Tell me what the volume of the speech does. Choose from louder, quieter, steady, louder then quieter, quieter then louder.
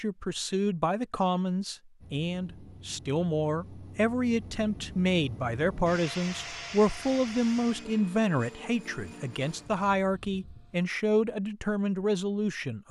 steady.